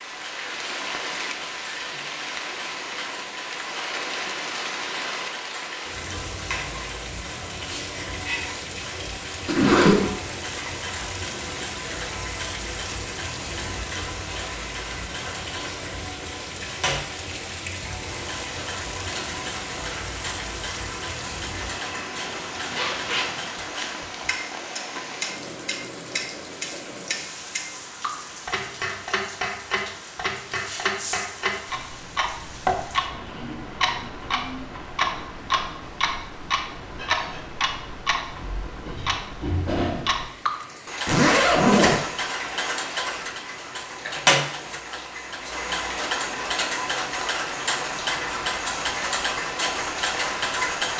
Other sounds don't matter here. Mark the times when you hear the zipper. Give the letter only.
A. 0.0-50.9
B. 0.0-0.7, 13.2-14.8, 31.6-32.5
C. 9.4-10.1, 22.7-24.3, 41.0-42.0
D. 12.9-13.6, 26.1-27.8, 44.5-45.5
C.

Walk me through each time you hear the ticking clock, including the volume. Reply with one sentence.
You can hear the ticking clock from 0.0 to 50.9 s, getting louder.